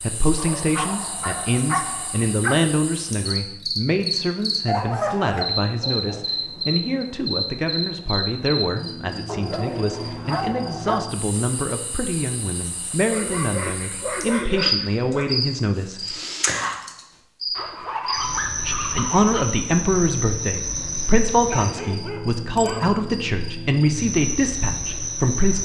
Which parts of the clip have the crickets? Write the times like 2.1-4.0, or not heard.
0.0-25.6.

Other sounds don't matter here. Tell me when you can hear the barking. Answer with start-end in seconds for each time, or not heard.
0.3-2.6, 4.7-6.2, 9.2-11.1, 13.1-15.3, 17.6-19.4, 21.4-22.9.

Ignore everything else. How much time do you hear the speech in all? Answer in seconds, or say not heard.
23 s.